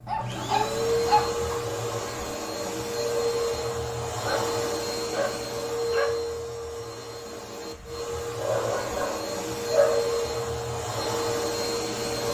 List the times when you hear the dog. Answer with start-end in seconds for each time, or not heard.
0.1-1.6, 4.2-6.2, 8.4-10.2.